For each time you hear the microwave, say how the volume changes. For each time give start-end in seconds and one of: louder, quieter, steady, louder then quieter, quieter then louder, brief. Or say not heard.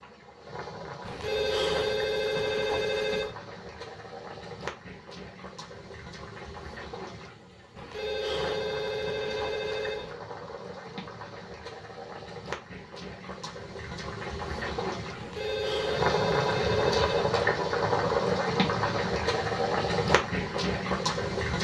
not heard.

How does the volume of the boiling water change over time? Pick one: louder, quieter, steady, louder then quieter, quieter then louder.
louder.